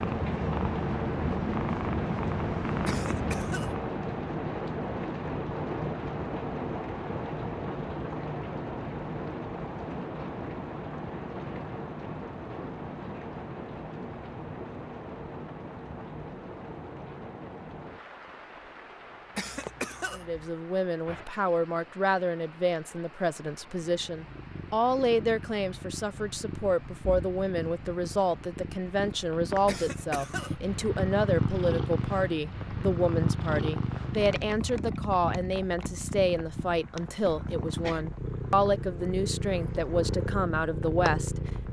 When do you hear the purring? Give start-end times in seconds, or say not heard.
0.0-3.7, 24.0-41.6.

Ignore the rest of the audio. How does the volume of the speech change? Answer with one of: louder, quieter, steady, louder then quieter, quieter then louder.
steady.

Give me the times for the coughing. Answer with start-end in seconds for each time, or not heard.
2.9-3.9, 19.4-20.5, 29.6-30.7.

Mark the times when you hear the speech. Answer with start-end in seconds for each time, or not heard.
20.1-41.6.